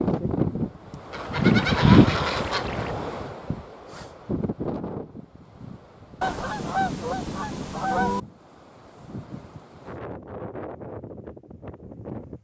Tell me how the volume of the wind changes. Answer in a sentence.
The volume of the wind goes down.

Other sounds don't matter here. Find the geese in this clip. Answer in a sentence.
You can hear the geese from 1.1 to 3.0 s and from 6.2 to 8.2 s.